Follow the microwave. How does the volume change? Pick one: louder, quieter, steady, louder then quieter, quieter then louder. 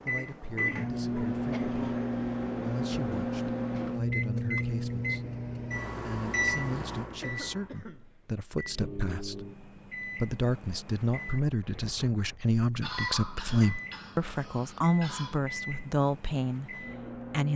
quieter.